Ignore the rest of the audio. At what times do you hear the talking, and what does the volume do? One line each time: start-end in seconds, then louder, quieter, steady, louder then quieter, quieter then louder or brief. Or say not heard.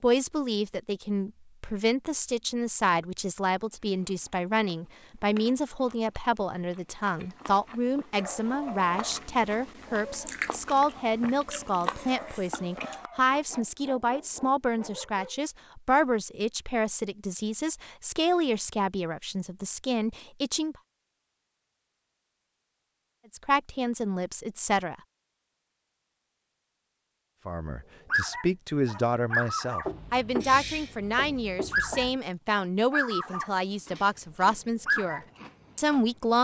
0.0-20.8 steady
23.3-24.9 brief
27.4-36.3 steady.